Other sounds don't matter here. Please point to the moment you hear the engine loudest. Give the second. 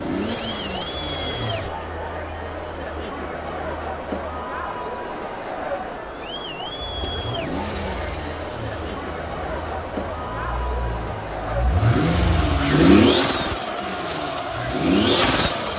13 s.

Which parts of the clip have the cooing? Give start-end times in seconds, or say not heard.
not heard.